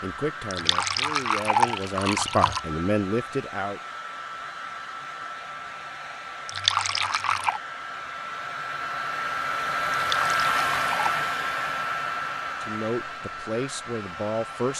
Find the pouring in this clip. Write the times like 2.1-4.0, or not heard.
0.5-2.6, 6.5-7.6, 9.9-11.2.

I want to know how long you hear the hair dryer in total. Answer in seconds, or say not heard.
15 s.